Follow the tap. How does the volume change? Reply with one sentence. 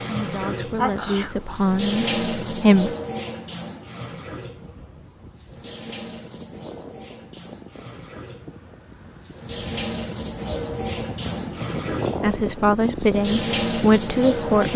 The loudness of the tap goes down, then up.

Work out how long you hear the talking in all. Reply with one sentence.
You can hear the talking for 5 seconds altogether.